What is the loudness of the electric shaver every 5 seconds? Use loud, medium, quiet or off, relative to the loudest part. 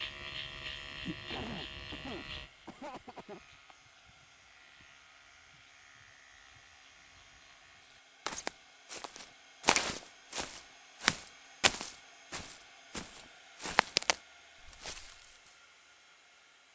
loud, quiet, off, off.